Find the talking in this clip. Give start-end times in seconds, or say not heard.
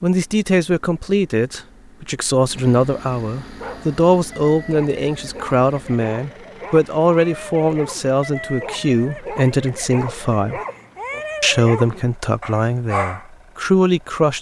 0.0-10.6, 11.4-14.3.